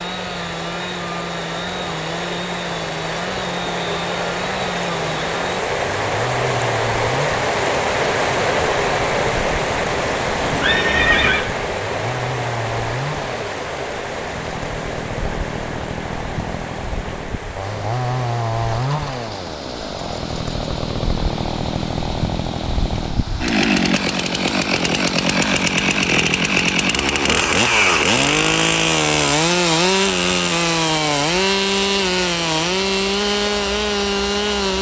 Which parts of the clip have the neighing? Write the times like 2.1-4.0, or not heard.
10.4-11.5.